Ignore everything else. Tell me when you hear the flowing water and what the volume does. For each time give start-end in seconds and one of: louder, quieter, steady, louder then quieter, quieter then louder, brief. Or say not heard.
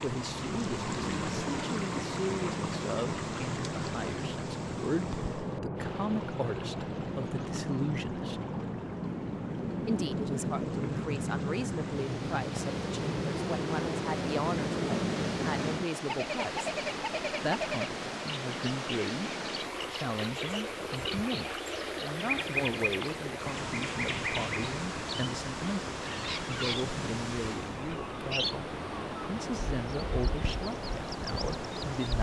0.0-32.1 quieter then louder.